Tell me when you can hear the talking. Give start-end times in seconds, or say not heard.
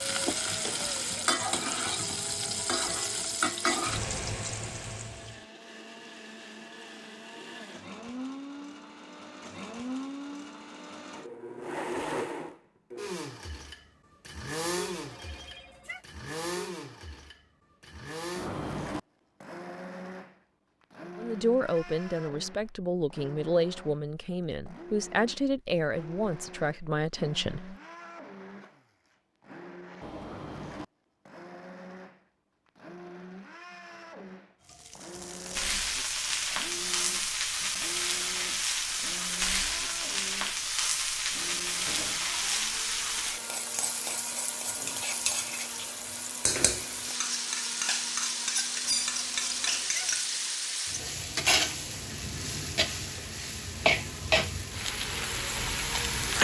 21.1-27.8.